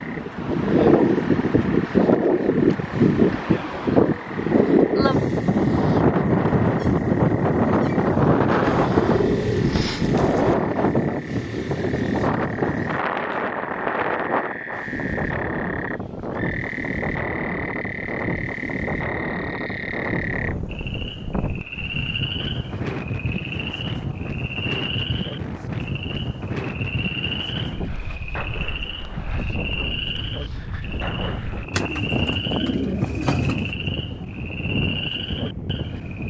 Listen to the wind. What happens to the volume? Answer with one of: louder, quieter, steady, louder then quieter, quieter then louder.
quieter.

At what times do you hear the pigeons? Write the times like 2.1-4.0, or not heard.
8.6-10.6, 31.7-33.8.